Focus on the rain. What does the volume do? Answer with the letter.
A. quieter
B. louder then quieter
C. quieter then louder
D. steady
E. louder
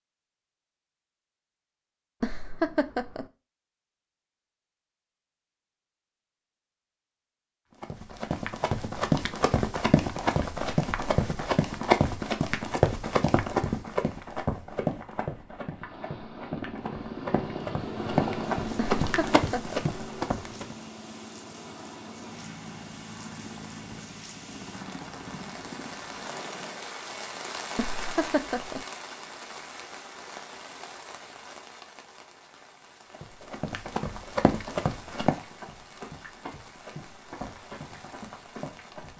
B.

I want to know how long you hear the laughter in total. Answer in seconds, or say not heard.
3 s.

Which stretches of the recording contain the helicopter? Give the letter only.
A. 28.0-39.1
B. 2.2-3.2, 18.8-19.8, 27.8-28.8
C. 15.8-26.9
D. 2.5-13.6
C.